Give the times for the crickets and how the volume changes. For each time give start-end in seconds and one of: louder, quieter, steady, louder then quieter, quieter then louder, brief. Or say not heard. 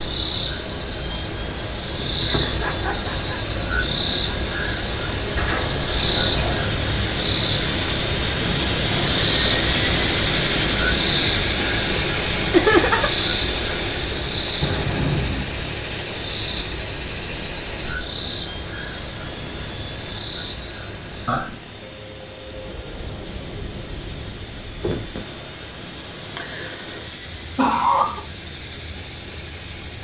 0.0-30.0 quieter.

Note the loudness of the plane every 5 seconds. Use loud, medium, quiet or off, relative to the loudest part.
medium, loud, loud, medium, quiet, quiet.